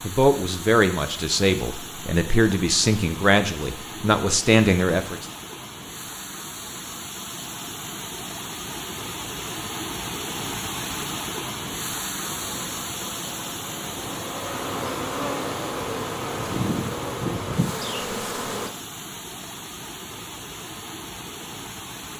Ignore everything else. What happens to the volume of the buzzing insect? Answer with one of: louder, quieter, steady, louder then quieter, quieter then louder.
louder.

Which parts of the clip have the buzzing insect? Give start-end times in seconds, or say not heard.
12.4-18.7.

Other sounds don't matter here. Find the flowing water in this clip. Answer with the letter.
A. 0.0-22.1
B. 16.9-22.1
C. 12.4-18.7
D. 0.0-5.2
A.